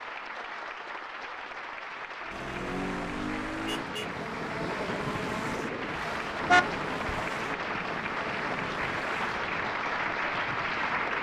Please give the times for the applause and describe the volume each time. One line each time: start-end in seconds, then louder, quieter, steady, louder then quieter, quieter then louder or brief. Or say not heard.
0.0-11.1 louder.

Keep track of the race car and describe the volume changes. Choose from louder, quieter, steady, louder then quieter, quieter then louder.
quieter.